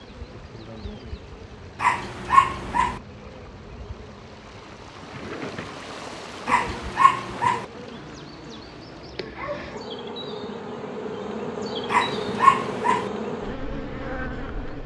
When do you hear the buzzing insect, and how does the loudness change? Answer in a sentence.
The buzzing insect can be heard from 0.0 to 14.8 s, getting louder.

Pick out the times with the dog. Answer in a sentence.
The dog can be heard from 1.8 to 3.0 s, from 6.5 to 7.7 s and from 11.9 to 13.1 s.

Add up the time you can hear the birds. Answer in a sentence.
The birds can't be heard in this clip.